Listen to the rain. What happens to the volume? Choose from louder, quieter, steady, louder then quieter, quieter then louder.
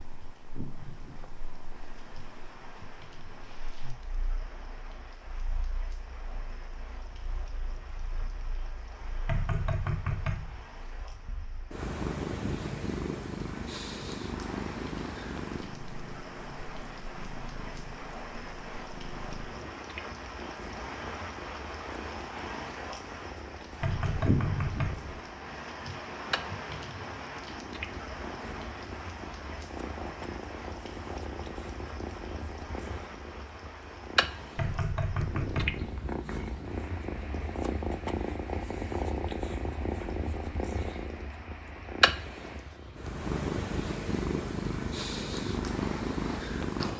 louder then quieter.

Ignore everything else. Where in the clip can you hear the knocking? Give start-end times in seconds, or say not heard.
9.2-10.7, 23.8-25.1, 34.5-35.8.